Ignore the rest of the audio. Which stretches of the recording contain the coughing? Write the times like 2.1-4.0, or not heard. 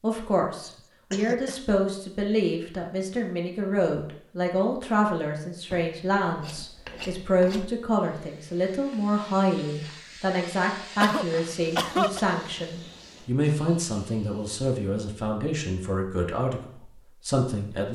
0.6-1.8, 11.0-12.2.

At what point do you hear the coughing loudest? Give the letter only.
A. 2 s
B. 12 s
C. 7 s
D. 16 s
B.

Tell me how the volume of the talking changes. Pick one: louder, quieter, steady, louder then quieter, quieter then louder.
steady.